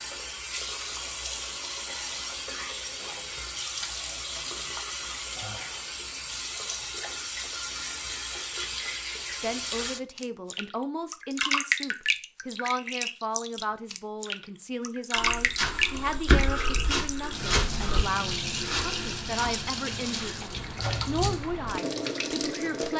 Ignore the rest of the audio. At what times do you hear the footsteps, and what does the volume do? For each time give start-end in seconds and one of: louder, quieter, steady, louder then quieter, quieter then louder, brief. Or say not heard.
15.2-21.0 quieter.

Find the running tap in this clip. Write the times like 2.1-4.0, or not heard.
0.0-22.9.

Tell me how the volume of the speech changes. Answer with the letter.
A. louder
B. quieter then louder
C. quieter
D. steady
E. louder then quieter
D.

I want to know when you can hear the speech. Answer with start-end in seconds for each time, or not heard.
9.4-22.9.